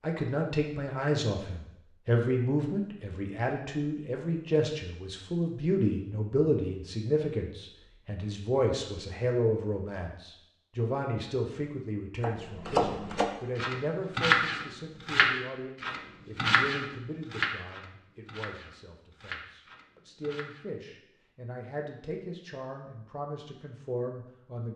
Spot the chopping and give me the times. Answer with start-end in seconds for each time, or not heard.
12.2-20.6.